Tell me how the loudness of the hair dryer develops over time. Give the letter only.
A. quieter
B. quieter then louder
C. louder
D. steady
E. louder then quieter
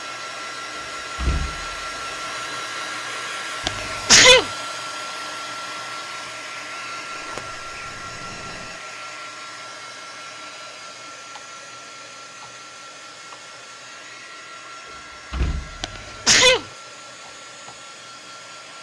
A.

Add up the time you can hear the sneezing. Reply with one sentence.
The sneezing can be heard for 2 seconds in total.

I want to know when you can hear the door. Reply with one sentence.
You can hear the door from 0.8 to 2.6 s, from 7.2 to 8.8 s and from 14.8 to 16.8 s.